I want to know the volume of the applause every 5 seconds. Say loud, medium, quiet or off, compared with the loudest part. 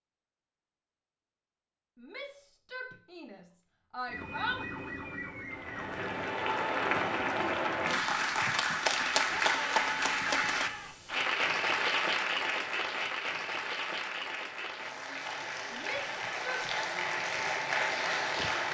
off, loud, loud, loud.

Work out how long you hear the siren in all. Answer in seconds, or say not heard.
2 s.